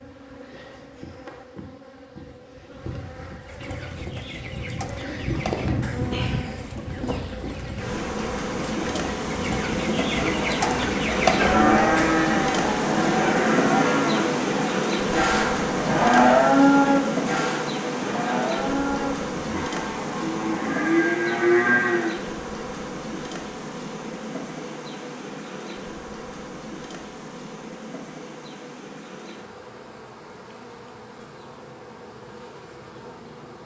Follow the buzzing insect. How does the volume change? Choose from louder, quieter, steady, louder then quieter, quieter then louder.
louder then quieter.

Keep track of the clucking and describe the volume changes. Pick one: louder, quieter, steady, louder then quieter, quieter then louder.
louder.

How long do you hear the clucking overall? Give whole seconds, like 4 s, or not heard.
9 s.